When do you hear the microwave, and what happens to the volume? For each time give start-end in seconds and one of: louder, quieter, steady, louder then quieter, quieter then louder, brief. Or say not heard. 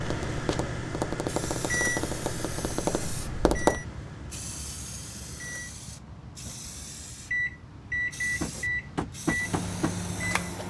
0.0-10.6 quieter then louder.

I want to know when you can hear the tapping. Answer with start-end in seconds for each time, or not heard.
0.0-3.8, 8.4-10.5.